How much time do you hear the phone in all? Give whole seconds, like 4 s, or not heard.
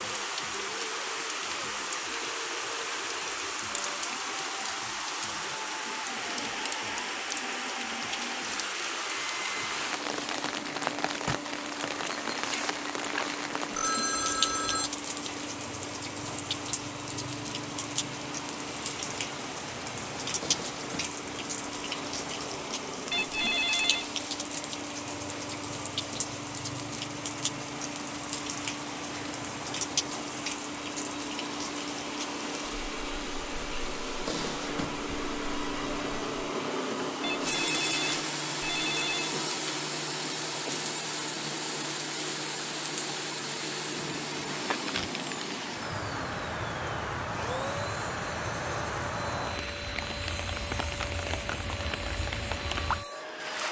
4 s.